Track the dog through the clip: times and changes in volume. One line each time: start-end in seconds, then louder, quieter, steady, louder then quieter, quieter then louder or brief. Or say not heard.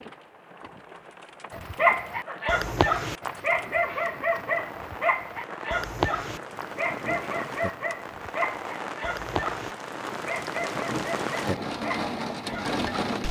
1.5-13.2 quieter.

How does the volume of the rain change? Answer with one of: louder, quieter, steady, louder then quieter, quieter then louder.
louder.